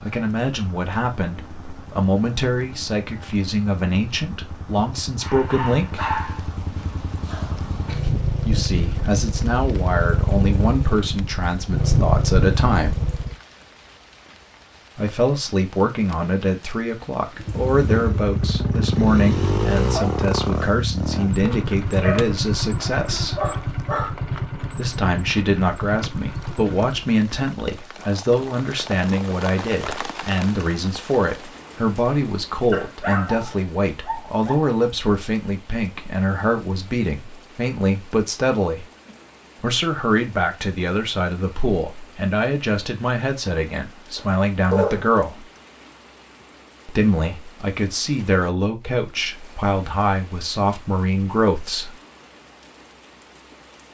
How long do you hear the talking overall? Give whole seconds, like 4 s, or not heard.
44 s.